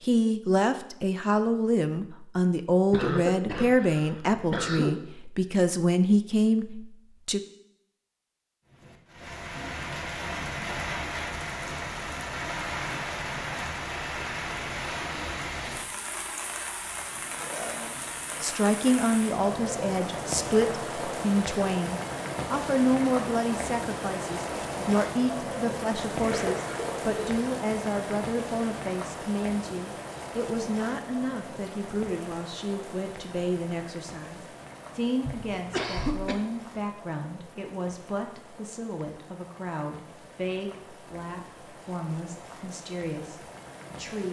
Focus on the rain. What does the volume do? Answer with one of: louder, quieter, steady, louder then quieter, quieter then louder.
quieter.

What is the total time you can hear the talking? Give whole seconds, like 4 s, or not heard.
33 s.